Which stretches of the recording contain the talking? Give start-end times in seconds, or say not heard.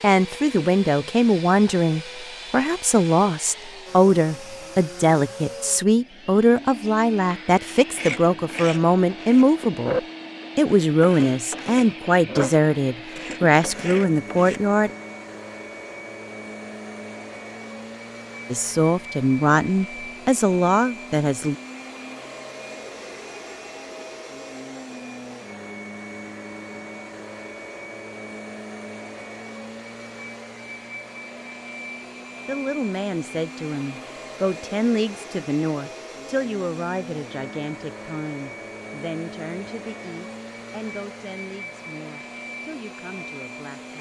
0.0-9.9, 10.6-14.9, 18.5-21.6, 32.5-43.9.